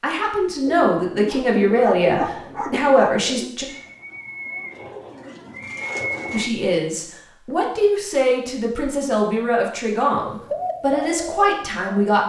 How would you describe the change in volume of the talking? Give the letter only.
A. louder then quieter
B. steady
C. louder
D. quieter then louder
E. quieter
B.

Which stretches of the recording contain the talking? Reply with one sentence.
The talking can be heard from 0.0 to 3.6 s and from 6.3 to 12.2 s.